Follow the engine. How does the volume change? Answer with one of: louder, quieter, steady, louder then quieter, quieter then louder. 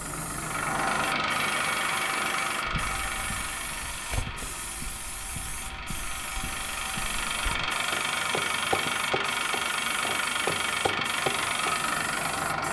quieter then louder.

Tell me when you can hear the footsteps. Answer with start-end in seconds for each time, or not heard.
2.6-11.8.